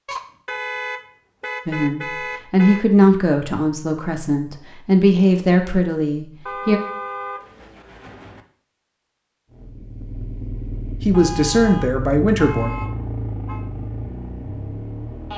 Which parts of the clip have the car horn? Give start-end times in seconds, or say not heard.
0.1-2.9, 6.5-8.4, 11.1-13.7.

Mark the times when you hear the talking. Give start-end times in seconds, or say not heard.
1.6-6.8, 10.9-12.7.